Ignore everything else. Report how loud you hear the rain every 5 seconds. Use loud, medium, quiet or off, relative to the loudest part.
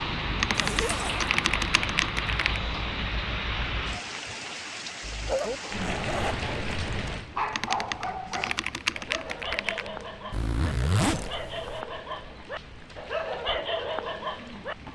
loud, medium, quiet.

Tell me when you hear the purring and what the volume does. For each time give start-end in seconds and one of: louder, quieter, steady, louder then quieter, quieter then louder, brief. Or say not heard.
not heard.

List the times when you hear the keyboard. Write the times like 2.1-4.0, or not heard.
0.4-2.6, 7.5-9.9.